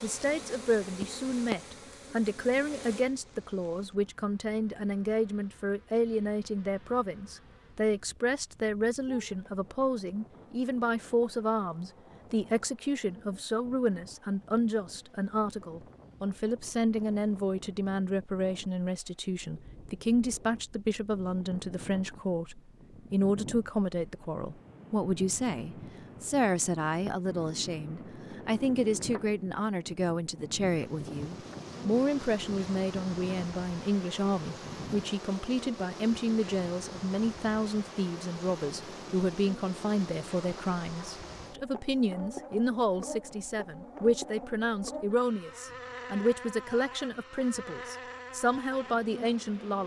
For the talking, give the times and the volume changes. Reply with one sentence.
You can hear the talking from 0.0 to 49.8 s, at a steady volume.